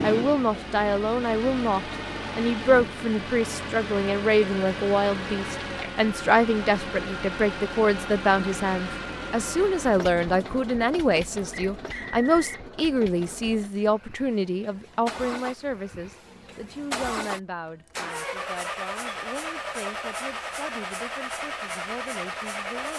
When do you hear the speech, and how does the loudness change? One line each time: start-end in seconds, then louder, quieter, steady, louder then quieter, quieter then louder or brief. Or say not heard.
0.0-22.9 quieter.